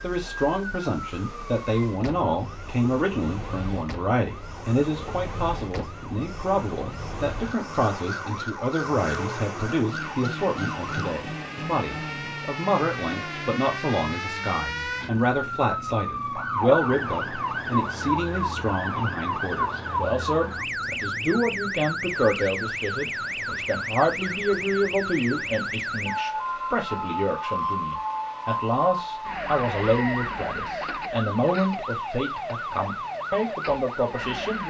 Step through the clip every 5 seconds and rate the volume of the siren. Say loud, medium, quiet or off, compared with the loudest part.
medium, medium, medium, loud, loud, loud, loud.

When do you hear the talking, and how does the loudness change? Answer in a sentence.
You can hear the talking from 0.0 to 34.6 s, at a steady volume.